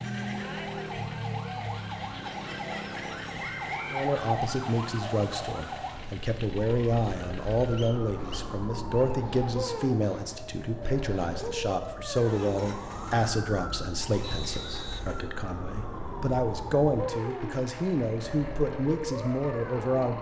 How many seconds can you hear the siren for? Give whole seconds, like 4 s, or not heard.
20 s.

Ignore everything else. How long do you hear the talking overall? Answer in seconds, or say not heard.
16 s.